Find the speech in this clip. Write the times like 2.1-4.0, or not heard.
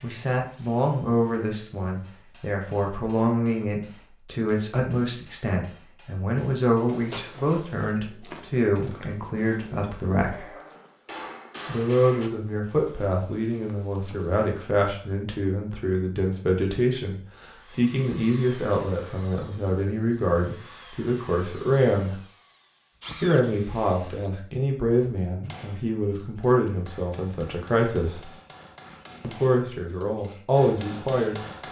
0.0-10.5, 11.7-22.2, 23.2-28.3, 29.2-31.4.